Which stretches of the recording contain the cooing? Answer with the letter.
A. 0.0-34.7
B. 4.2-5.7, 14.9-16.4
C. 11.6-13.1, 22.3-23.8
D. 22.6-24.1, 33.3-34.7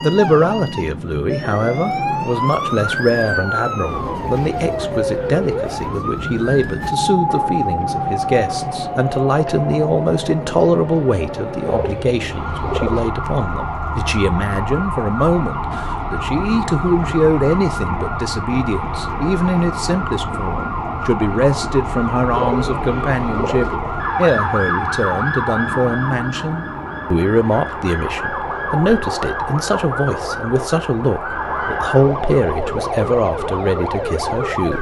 C.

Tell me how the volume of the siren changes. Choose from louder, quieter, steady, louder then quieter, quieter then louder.
steady.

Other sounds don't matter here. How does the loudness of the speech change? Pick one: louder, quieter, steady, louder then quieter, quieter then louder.
steady.